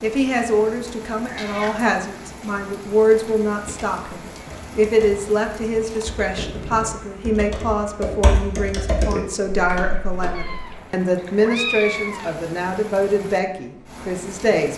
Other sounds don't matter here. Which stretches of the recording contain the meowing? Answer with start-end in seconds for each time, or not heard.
1.2-1.8, 5.8-6.2, 10.3-12.3.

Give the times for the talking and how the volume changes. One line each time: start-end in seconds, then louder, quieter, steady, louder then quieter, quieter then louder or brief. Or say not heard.
0.0-14.7 steady.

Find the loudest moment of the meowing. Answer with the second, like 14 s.
12 s.